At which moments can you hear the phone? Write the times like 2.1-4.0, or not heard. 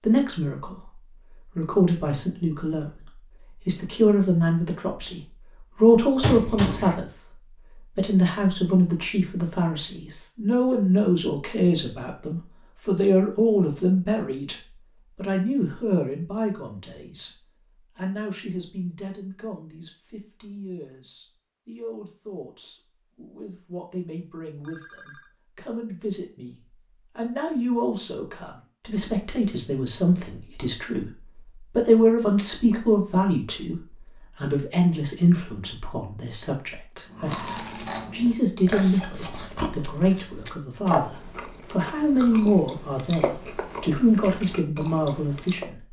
24.6-25.3.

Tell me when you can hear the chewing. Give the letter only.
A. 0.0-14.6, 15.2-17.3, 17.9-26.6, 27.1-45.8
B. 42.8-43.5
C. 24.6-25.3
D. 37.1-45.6
D.